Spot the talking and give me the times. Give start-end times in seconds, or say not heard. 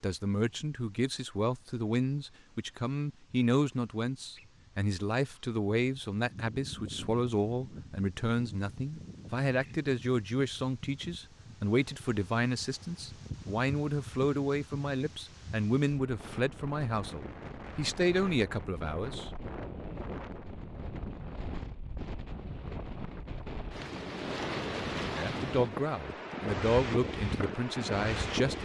0.0-19.3, 25.1-28.5.